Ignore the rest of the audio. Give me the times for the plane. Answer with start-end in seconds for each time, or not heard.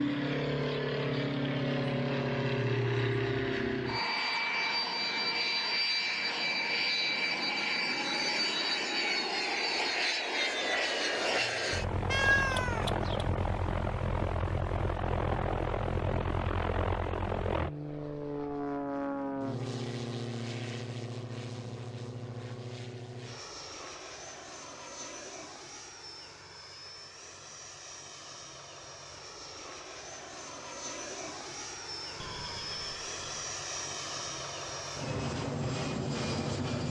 0.0-36.8.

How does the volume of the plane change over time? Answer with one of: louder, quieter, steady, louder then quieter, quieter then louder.
quieter then louder.